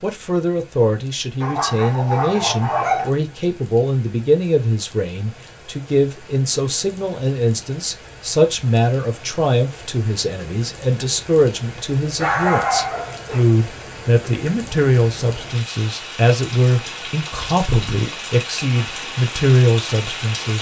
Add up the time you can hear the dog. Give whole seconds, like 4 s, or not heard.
3 s.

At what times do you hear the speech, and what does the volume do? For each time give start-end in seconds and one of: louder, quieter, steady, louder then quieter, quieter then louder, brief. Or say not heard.
0.0-20.5 steady.